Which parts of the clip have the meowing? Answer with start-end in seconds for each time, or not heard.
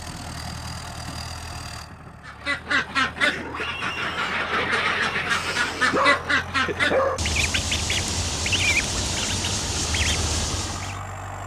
not heard.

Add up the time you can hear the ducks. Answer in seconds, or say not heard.
9 s.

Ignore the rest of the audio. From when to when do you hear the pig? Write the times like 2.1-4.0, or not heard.
3.2-6.0.